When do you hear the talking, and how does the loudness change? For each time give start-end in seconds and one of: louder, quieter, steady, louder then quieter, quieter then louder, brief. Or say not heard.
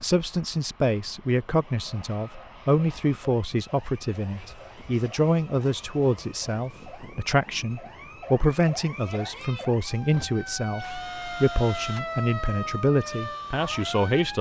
0.0-14.3 steady.